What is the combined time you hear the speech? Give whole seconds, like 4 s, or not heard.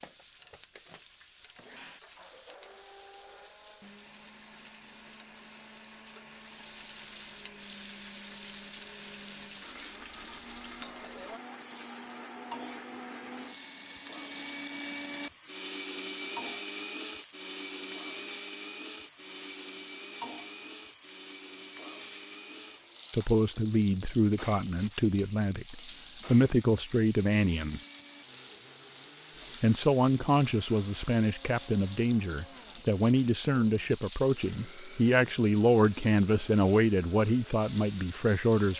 14 s.